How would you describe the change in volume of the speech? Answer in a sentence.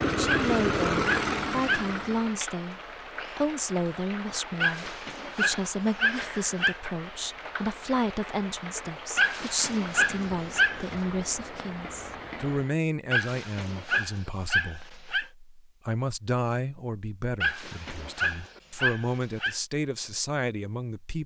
The volume of the speech stays about the same.